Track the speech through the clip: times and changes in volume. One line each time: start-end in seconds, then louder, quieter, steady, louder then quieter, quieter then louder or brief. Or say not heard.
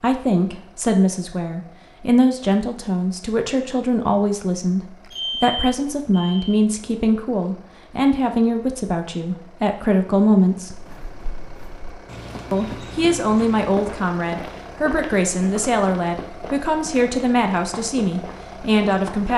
0.0-10.8 steady
12.5-19.3 steady.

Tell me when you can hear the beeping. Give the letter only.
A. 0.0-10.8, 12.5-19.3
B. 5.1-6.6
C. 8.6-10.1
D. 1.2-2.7
B.